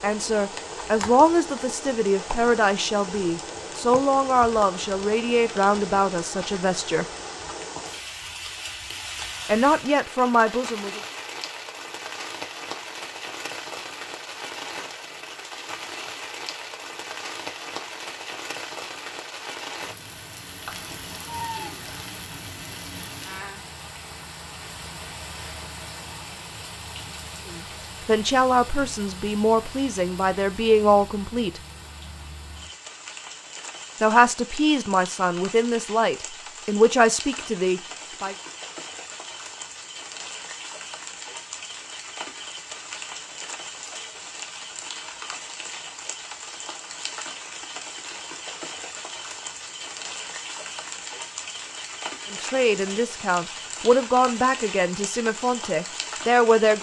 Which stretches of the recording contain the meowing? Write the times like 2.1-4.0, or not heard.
20.6-21.8.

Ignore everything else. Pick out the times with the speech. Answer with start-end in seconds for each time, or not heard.
0.0-7.0, 9.4-11.0, 27.5-31.6, 34.0-38.4, 52.3-56.7.